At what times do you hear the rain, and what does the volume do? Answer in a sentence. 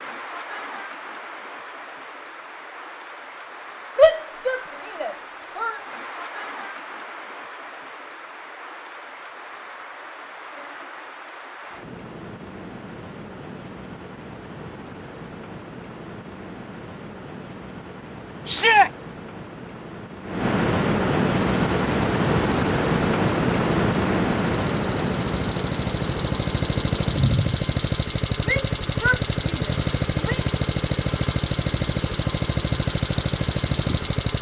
The rain can be heard from 0.0 to 34.3 s, getting louder then quieter.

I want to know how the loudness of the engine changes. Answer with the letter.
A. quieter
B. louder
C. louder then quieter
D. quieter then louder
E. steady
B.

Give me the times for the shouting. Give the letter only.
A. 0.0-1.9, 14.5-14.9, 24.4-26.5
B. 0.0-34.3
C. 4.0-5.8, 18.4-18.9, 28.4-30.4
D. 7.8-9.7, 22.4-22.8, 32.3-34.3
C.